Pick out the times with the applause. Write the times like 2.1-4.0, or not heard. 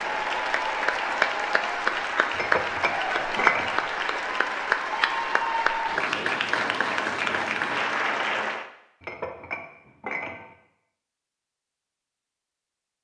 0.0-8.7.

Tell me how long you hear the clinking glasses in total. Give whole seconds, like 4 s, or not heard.
3 s.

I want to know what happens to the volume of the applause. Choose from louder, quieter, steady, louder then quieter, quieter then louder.
steady.